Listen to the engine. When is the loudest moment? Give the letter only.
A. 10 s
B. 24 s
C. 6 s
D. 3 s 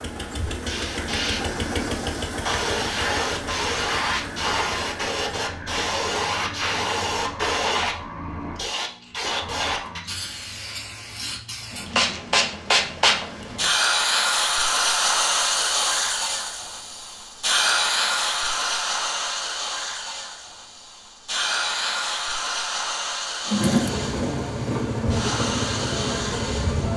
B.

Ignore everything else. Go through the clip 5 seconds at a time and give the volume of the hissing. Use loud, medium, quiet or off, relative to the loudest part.
loud, loud, loud, loud, medium, medium.